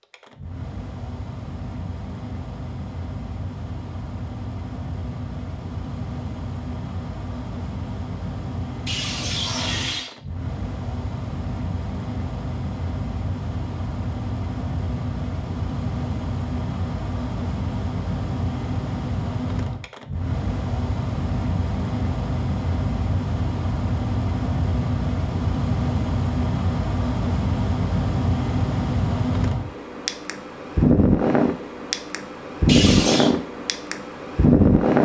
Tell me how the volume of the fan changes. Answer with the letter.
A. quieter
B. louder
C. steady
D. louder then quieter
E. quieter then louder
B.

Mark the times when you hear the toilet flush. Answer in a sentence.
The toilet flush can be heard from 8.8 to 10.1 s and from 32.6 to 33.4 s.